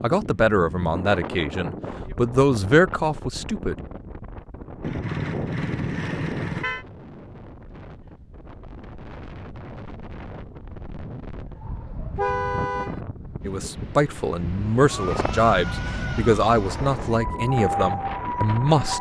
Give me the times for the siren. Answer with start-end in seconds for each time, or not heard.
14.8-18.9.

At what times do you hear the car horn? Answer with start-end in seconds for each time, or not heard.
4.8-6.8, 12.2-13.0.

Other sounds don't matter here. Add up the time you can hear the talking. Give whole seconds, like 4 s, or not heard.
9 s.